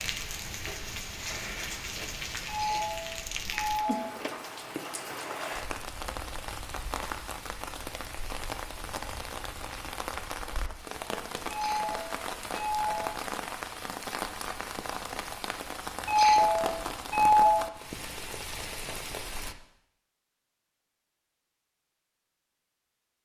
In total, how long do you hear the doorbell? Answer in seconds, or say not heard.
5 s.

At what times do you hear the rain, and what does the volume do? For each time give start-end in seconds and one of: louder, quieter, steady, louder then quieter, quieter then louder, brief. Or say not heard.
0.0-19.6 steady.